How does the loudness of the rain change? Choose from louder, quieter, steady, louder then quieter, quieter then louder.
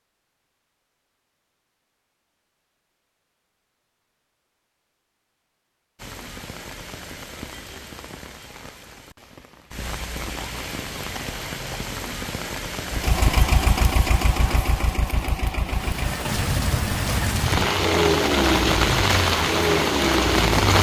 louder.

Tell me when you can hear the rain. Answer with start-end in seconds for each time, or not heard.
6.0-20.7.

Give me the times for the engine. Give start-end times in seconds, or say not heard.
12.9-20.7.